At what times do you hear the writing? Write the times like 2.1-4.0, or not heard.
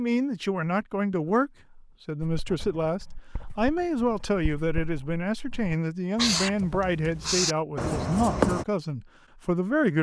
2.2-8.7.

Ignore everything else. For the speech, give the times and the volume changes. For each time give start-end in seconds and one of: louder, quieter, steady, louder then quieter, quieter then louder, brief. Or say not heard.
0.0-9.9 steady.